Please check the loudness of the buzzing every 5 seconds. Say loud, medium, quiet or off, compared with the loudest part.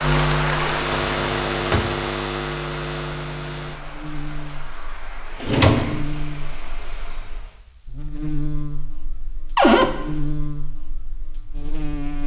loud, medium, medium.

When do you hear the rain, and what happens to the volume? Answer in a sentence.
You can hear the rain from 0.0 to 7.6 s, getting quieter.